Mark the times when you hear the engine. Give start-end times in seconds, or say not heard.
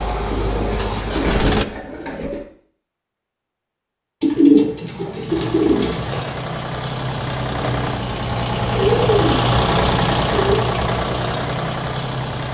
0.0-1.6, 5.2-12.4.